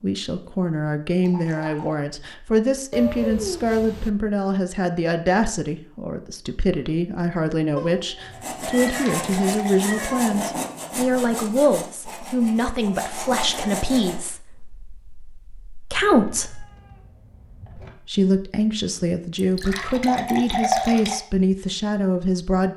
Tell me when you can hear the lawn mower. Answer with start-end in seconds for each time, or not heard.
not heard.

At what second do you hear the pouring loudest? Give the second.
21 s.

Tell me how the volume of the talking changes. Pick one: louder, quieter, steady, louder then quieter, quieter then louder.
steady.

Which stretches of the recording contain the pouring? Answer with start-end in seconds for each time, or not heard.
1.2-2.0, 8.8-9.8, 19.4-21.1.